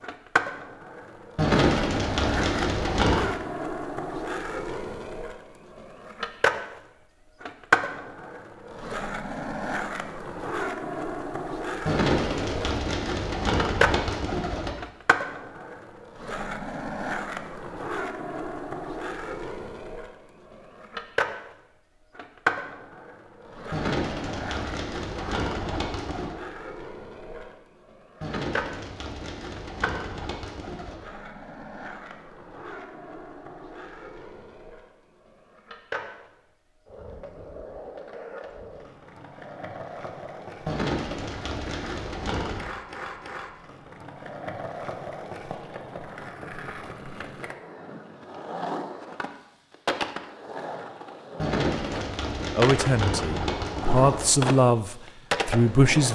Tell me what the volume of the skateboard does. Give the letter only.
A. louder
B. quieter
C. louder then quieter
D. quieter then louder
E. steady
D.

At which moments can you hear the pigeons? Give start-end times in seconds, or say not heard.
1.4-3.3, 11.8-14.7, 23.7-26.4, 28.2-31.0, 40.6-42.6, 51.4-54.3.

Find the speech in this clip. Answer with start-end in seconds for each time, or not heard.
52.5-56.1.